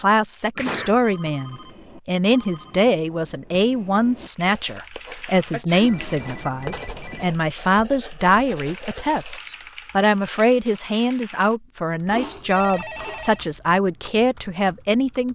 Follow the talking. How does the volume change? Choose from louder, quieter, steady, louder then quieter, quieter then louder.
steady.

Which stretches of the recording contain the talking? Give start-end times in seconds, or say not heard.
0.0-15.3.